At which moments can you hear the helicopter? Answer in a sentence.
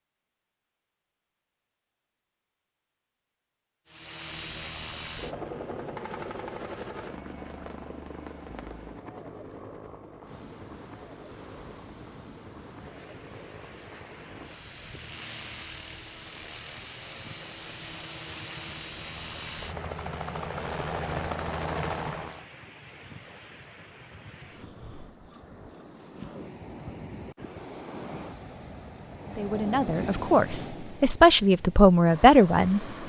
The helicopter can be heard from 3.9 to 22.4 s.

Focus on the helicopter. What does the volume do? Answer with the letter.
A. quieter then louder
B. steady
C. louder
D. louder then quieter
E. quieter
A.